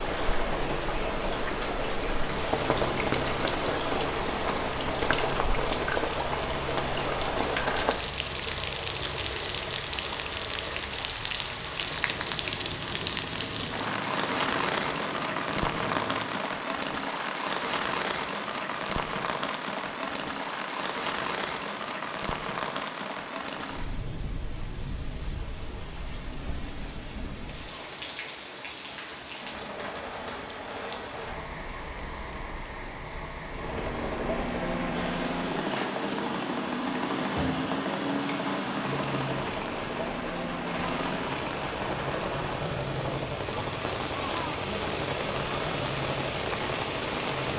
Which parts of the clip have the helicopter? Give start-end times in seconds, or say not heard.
0.1-16.4, 33.5-47.5.